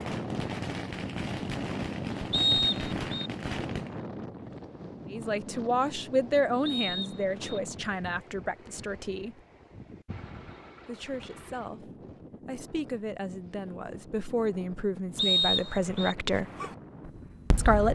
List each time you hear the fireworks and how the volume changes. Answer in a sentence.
You can hear the fireworks from 0.0 to 4.0 s, at a steady volume; and briefly from 16.4 to 17.9 s.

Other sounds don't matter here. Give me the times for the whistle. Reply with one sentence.
You can hear the whistle from 2.3 to 3.3 s, from 6.7 to 7.6 s and from 15.2 to 16.1 s.